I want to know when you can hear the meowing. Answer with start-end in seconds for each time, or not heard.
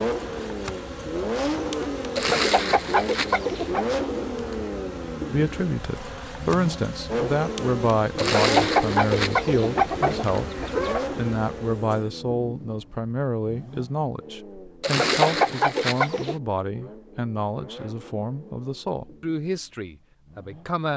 not heard.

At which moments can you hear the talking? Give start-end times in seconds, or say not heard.
5.3-20.9.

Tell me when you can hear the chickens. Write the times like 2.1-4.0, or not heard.
2.1-3.9, 8.2-11.1, 14.8-16.4.